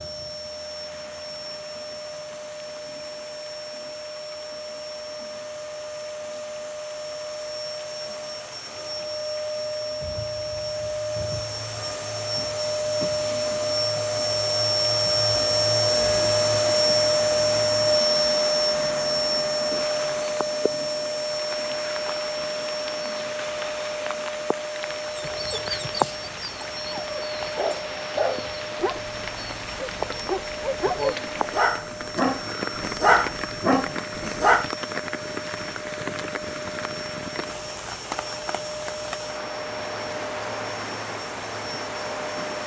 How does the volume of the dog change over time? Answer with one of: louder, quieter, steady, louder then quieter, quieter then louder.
louder.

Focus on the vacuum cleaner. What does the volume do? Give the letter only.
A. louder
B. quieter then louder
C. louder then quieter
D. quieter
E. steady
C.